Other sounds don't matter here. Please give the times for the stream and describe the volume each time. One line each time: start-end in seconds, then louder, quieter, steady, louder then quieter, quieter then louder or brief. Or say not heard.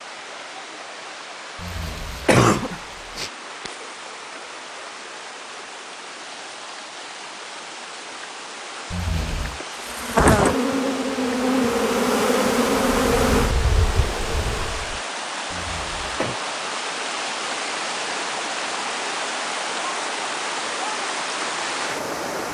0.0-22.4 louder.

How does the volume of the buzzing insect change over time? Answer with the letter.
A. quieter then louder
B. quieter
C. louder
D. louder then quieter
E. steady
B.